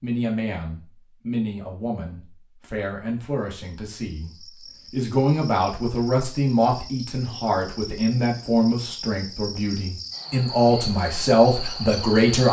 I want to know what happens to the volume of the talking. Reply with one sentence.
The volume of the talking goes up.